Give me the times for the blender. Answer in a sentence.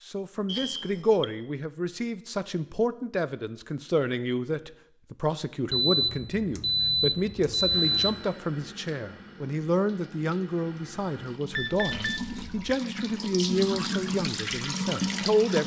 You can't hear the blender here.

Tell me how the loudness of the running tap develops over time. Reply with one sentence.
The volume of the running tap goes up.